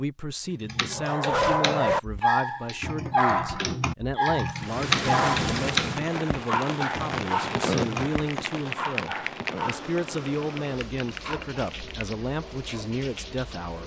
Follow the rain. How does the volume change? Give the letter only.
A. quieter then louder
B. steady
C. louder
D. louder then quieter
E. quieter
E.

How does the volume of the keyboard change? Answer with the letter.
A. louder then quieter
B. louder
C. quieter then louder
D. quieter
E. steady
A.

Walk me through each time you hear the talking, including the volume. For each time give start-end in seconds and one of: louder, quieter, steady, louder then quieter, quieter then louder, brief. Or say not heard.
0.0-13.8 steady.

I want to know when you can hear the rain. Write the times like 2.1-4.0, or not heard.
4.5-13.8.